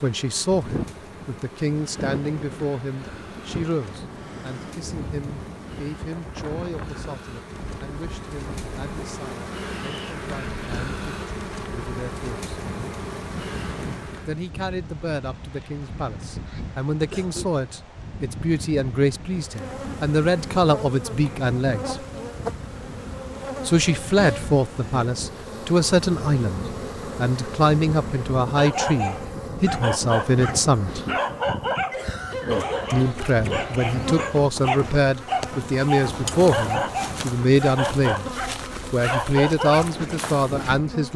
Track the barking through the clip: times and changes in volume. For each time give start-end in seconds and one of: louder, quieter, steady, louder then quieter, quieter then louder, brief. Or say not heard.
28.6-40.0 steady.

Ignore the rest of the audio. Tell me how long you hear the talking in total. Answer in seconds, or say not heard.
35 s.